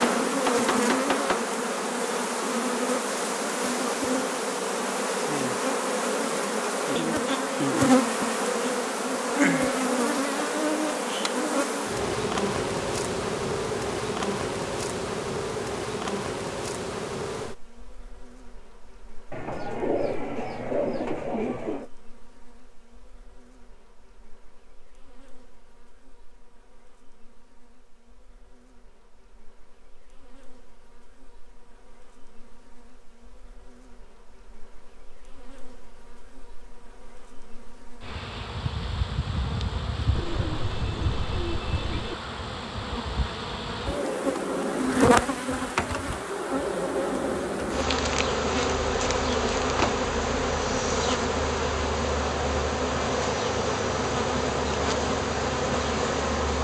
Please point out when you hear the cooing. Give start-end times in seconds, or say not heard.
19.3-21.9, 40.1-42.1.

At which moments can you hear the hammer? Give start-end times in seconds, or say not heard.
0.0-1.5.